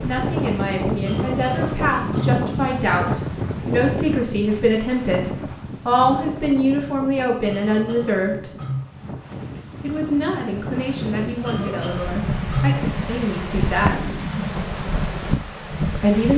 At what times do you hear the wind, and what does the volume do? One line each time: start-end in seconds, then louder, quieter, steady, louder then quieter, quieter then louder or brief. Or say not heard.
0.0-16.3 quieter then louder.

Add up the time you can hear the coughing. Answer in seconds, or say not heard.
4 s.